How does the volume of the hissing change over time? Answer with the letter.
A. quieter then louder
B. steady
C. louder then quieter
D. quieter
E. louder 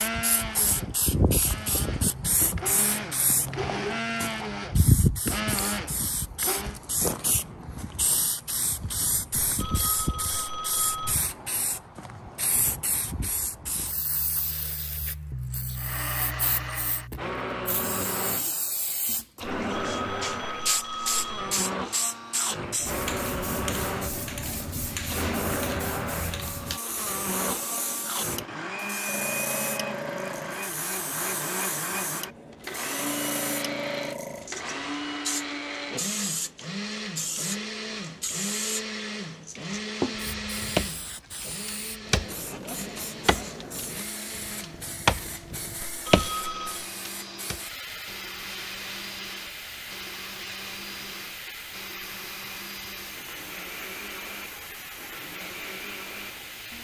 D.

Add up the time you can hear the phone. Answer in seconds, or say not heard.
5 s.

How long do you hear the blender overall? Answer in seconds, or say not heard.
48 s.